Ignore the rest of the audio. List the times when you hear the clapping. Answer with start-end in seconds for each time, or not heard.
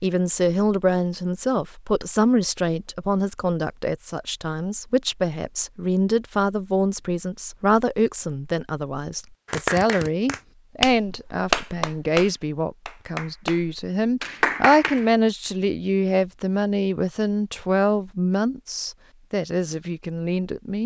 9.4-15.1.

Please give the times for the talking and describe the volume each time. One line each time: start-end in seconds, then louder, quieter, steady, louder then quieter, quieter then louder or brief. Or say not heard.
0.0-20.8 steady.